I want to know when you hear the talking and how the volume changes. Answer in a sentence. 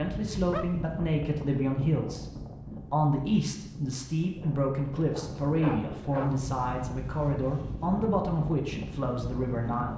The talking can be heard from 0.0 to 9.9 s, at a steady volume.